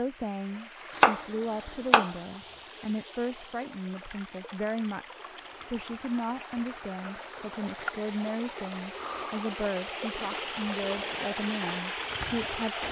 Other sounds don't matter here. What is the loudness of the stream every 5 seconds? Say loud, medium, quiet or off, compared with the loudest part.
quiet, medium, loud.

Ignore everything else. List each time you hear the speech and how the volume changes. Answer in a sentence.
You can hear the speech from 0.0 to 12.8 s, at a steady volume.